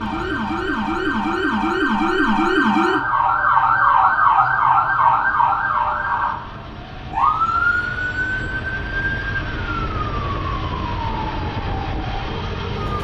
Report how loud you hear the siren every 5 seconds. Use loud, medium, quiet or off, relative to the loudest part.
loud, loud, quiet.